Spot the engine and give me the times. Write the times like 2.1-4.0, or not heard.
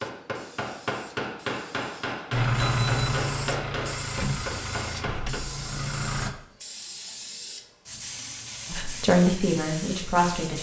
2.4-6.3.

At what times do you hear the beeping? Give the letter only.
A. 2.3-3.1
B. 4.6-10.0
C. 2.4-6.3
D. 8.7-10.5
A.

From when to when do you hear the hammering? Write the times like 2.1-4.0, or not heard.
0.0-5.4.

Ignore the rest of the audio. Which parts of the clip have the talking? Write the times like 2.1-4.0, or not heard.
8.7-10.5.